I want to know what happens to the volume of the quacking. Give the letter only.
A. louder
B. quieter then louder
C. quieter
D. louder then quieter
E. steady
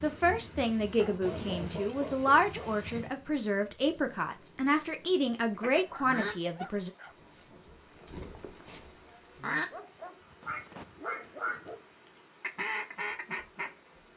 B.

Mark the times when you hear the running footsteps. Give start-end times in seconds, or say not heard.
not heard.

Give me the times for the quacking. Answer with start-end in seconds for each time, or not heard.
5.5-9.7, 10.4-13.7.